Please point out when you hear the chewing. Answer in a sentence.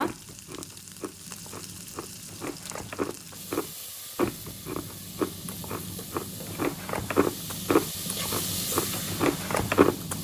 You can hear the chewing from 0.0 to 10.1 s.